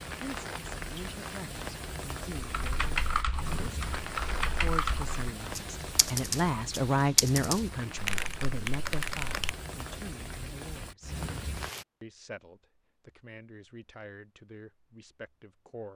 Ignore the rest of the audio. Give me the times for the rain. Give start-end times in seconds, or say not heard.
0.0-11.8.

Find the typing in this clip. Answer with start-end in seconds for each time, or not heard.
2.4-9.6.